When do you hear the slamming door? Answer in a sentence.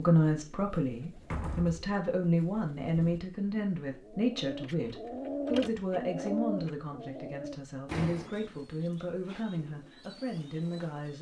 The slamming door can be heard from 1.1 to 1.9 s and from 7.9 to 8.3 s.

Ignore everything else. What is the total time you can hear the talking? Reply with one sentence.
You can hear the talking for 11 seconds altogether.